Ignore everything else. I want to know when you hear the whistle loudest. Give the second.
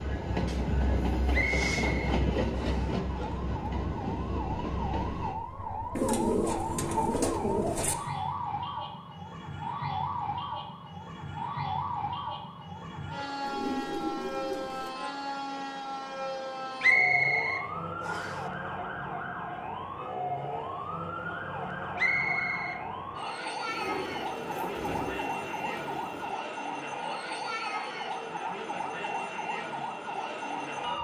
17 s.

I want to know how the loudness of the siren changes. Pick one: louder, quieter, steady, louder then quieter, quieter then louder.
steady.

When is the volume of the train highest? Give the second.
2 s.